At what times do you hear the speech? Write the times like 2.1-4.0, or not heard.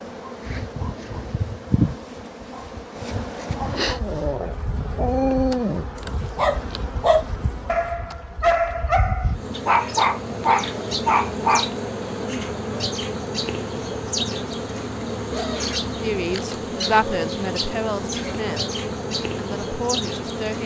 16.0-18.7, 19.4-20.6.